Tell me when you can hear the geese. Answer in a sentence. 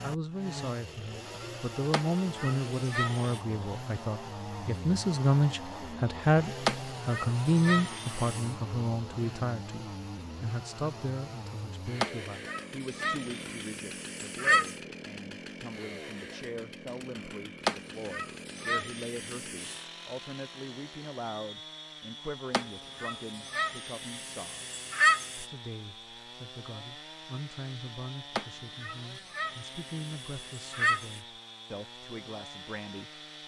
The geese can be heard from 1.9 to 3.4 s, from 6.7 to 8.5 s, from 12.0 to 14.8 s, from 17.6 to 19.8 s, from 22.5 to 25.4 s and from 28.4 to 31.2 s.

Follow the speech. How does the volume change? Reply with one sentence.
The loudness of the speech goes down.